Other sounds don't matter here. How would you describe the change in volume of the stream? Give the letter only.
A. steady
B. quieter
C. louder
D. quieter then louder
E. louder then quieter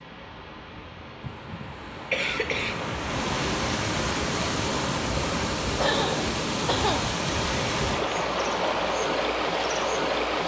C.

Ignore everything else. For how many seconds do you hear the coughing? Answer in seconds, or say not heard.
3 s.